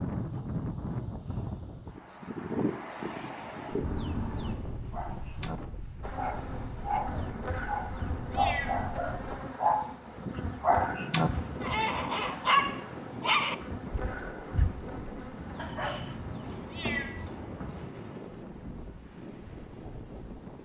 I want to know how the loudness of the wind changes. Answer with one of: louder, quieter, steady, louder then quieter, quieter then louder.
quieter.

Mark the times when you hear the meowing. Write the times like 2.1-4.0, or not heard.
3.8-4.6, 7.2-9.0, 15.4-17.8.